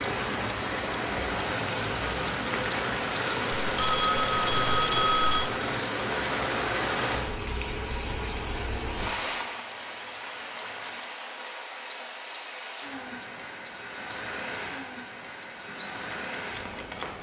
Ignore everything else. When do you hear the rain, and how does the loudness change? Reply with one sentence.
You can hear the rain from 0.0 to 17.1 s, getting quieter.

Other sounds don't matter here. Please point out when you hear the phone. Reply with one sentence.
You can hear the phone from 3.6 to 5.5 s.